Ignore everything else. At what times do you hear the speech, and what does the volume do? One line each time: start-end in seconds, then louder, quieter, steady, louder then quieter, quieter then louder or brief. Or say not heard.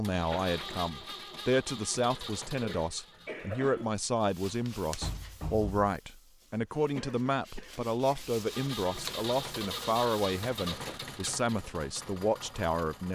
0.0-13.1 steady.